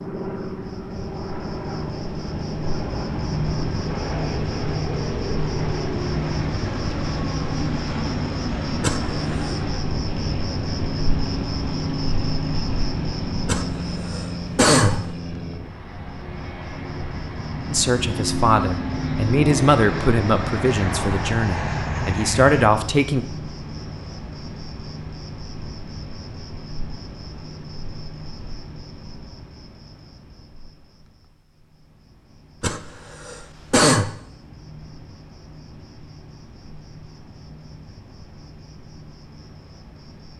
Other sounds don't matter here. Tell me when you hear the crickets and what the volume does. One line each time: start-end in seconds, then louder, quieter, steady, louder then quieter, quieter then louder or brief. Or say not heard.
0.1-40.3 quieter.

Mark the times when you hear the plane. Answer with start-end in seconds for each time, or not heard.
0.0-22.7.